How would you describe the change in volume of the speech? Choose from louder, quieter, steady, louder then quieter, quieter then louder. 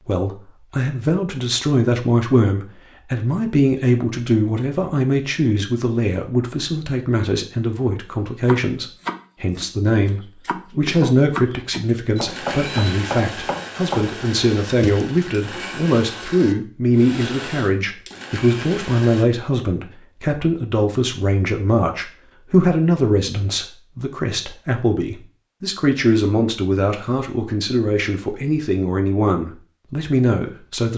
steady.